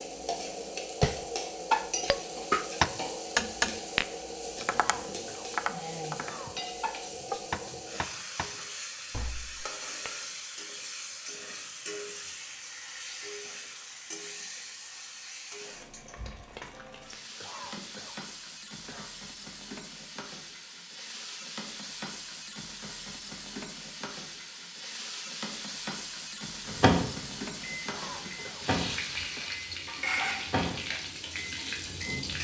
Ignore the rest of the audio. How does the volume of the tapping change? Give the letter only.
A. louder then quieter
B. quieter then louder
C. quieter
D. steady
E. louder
C.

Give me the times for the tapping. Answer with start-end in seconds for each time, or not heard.
1.0-10.1.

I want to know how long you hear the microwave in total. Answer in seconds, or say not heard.
6 s.